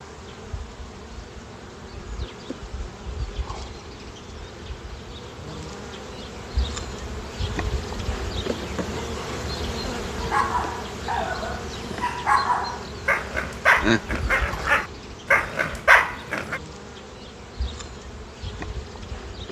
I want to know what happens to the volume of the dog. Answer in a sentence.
The volume of the dog goes up.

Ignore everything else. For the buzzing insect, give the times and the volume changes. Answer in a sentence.
You can hear the buzzing insect from 0.0 to 19.4 s, getting louder then quieter.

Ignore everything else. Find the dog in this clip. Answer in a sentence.
The dog can be heard from 10.2 to 16.6 s.